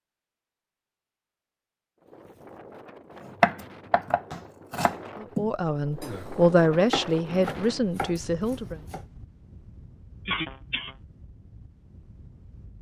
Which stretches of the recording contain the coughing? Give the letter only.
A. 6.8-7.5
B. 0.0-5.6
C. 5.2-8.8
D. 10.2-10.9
D.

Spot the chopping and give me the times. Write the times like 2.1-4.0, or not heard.
3.4-9.0.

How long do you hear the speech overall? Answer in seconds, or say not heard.
4 s.